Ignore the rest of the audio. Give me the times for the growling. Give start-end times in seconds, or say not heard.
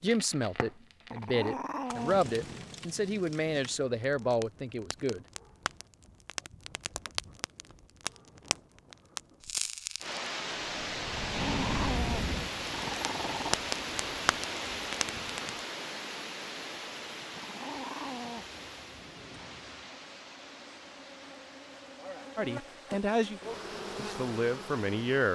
1.1-2.2, 11.2-13.6, 17.4-18.4.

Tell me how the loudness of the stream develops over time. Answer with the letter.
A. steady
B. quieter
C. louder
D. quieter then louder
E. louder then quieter
B.